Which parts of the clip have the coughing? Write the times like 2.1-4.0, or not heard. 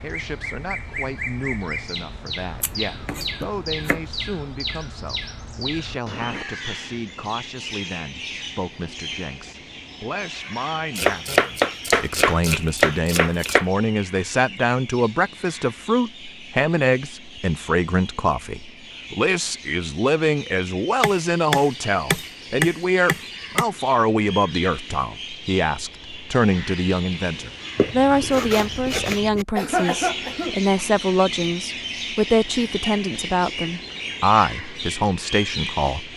29.6-30.8.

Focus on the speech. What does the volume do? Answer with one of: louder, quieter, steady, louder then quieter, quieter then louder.
louder.